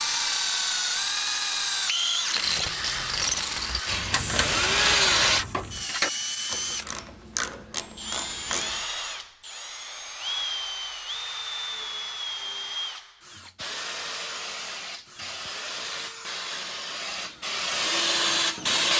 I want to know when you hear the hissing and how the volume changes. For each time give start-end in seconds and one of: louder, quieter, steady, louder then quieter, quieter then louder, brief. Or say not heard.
3.9-5.5 brief
13.6-18.9 louder.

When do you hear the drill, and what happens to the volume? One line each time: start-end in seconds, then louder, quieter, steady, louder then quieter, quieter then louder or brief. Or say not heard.
0.0-18.9 quieter.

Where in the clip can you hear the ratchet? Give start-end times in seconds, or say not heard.
2.5-8.8.